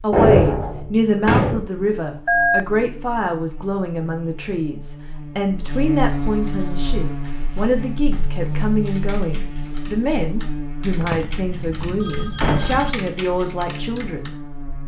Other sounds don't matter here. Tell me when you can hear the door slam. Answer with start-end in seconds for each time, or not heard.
0.1-1.6, 12.4-12.9.